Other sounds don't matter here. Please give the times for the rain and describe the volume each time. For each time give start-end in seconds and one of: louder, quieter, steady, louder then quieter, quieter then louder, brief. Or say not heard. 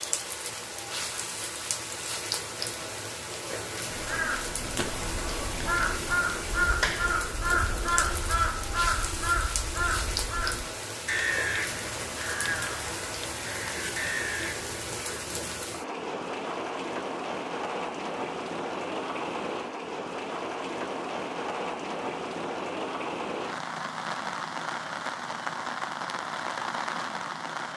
0.0-27.7 steady.